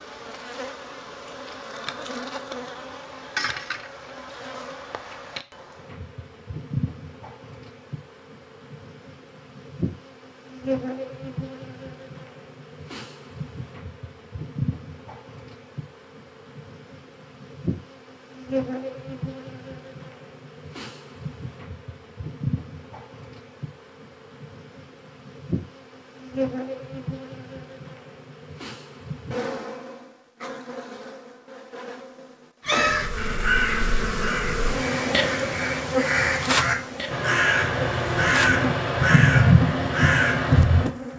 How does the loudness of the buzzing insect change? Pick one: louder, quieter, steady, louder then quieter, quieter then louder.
louder.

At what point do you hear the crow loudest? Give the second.
39 s.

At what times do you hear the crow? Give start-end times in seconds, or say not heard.
32.6-40.9.